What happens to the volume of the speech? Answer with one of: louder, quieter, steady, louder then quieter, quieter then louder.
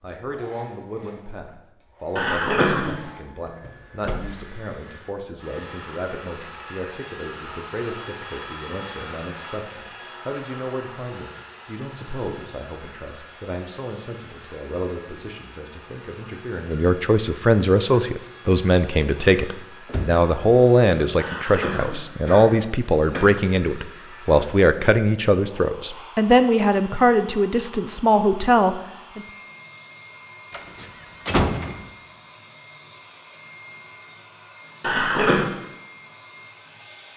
louder.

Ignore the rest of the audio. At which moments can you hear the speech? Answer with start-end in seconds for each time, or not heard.
0.0-29.2.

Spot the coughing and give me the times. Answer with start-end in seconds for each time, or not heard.
2.1-3.0, 21.1-23.2, 34.8-35.5.